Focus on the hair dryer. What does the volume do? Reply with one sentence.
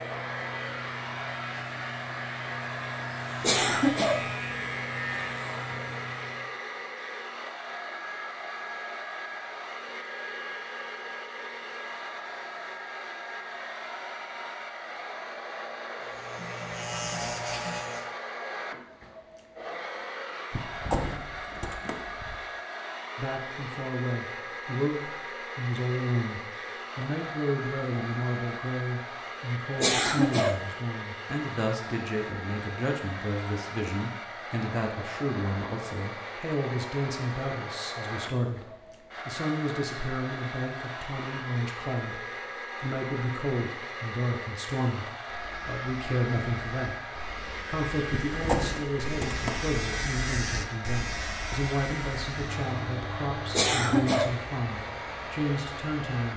The volume of the hair dryer stays about the same.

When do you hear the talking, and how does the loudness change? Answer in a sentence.
The talking can be heard from 23.1 to 47.0 s, at a steady volume; and from 47.6 to 56.3 s, at a steady volume.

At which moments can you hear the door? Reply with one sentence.
You can hear the door from 20.5 to 22.4 s and from 48.3 to 49.7 s.